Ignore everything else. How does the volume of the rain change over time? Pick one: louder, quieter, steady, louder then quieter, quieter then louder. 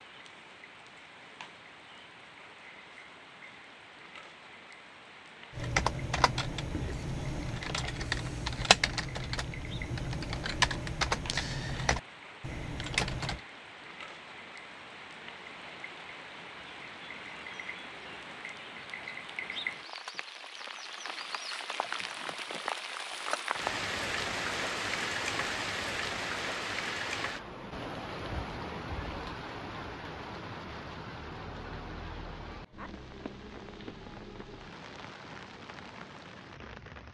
louder then quieter.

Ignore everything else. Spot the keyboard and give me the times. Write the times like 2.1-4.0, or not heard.
5.5-13.4.